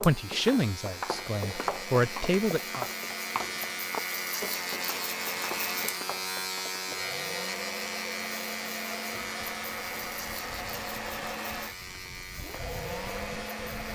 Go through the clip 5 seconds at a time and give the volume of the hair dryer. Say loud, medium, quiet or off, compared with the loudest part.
medium, loud, loud.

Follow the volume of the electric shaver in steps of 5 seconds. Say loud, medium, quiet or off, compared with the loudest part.
loud, loud, medium.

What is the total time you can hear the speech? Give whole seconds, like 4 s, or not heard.
3 s.